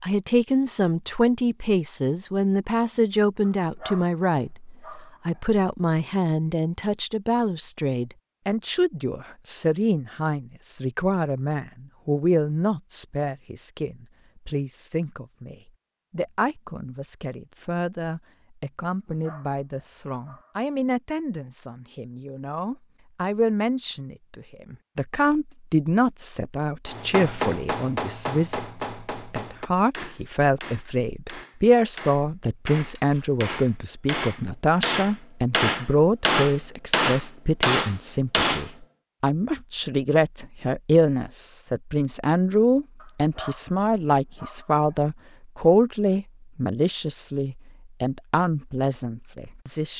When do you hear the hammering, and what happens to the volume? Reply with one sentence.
The hammering can be heard from 26.9 to 38.7 s, getting quieter then louder.